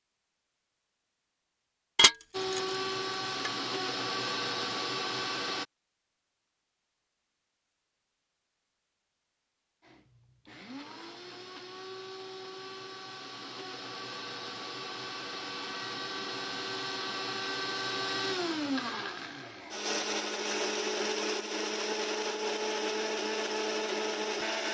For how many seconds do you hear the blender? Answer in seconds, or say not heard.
18 s.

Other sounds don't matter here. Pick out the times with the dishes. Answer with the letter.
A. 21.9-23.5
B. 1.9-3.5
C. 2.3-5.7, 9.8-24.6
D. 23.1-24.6
B.